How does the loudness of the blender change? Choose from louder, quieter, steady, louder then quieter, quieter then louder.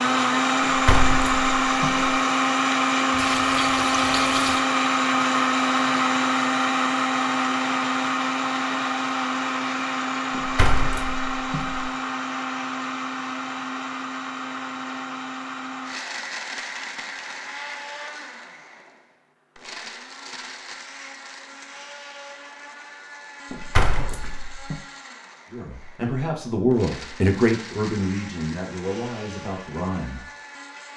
quieter.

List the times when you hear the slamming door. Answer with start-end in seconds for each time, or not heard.
0.7-2.0, 10.3-11.9, 23.5-24.8.